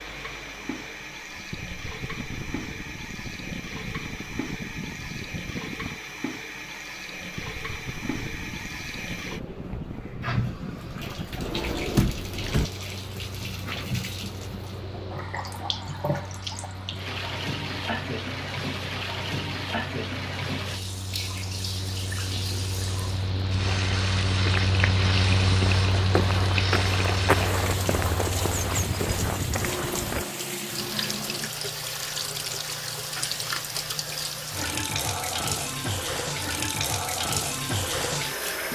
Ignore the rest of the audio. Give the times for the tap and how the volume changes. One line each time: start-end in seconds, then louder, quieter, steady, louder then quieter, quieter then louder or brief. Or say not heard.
0.0-38.6 louder.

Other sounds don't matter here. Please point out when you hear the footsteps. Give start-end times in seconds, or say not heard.
23.6-30.2.